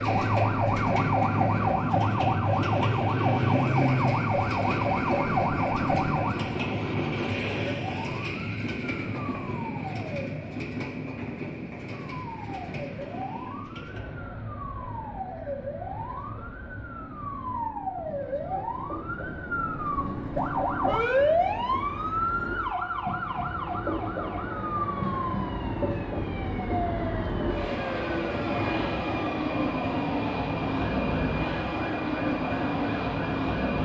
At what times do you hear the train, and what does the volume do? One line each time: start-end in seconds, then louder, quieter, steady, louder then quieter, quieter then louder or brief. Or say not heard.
0.0-33.8 quieter then louder.